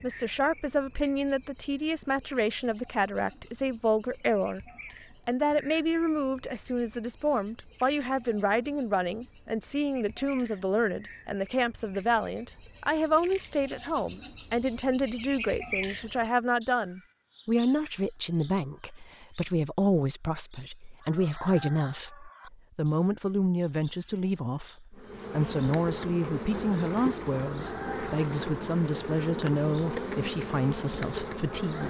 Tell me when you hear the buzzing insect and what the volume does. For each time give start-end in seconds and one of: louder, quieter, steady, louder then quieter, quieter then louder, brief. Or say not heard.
24.9-31.8 steady.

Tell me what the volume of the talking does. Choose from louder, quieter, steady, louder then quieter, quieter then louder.
steady.